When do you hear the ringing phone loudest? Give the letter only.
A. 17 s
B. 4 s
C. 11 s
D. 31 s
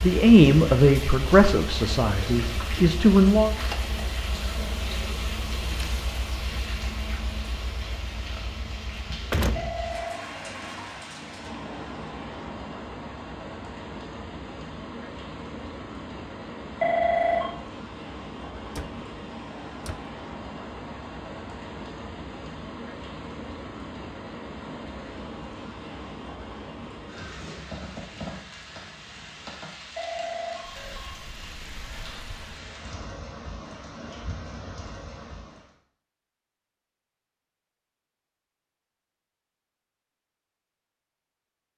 A.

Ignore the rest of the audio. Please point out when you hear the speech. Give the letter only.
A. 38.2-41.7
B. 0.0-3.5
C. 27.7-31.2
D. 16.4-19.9
B.